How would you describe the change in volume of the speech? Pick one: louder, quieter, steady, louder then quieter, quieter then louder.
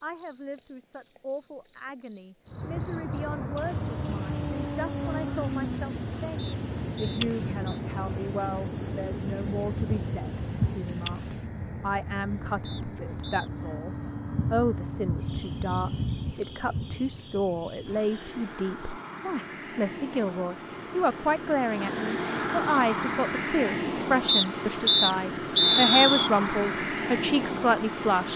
louder.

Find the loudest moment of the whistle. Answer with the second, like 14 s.
26 s.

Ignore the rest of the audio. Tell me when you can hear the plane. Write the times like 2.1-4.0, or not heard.
2.5-28.3.